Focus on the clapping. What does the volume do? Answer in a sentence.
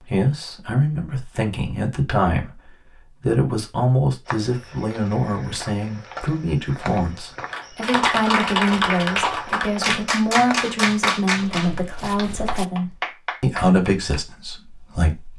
The volume of the clapping goes down.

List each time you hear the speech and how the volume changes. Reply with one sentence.
You can hear the speech from 0.1 to 15.3 s, at a steady volume.